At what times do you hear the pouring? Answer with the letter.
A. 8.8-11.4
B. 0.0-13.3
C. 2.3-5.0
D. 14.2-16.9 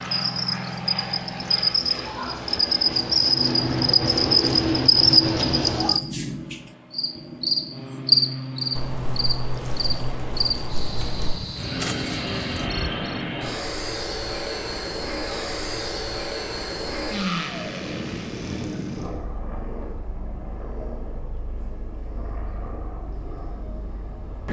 A.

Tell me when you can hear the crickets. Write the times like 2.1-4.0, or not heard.
0.0-13.3.